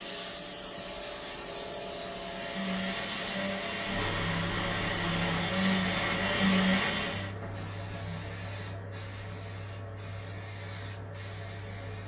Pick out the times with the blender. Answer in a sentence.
The blender can be heard from 2.2 to 7.3 s.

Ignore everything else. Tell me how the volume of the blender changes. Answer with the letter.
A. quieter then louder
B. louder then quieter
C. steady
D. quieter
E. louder
E.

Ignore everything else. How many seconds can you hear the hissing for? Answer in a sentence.
You can hear the hissing for 12 seconds altogether.